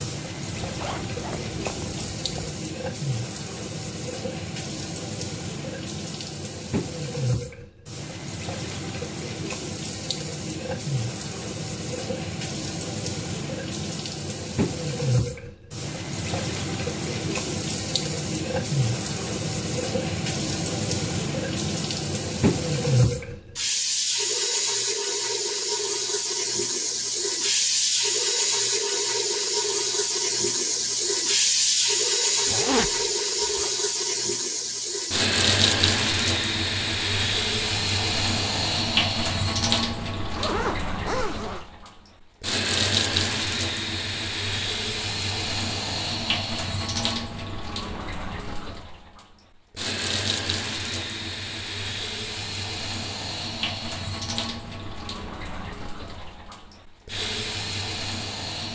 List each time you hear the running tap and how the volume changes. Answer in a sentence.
The running tap can be heard from 0.0 to 58.7 s, getting louder then quieter.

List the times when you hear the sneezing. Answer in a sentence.
You can't hear the sneezing here.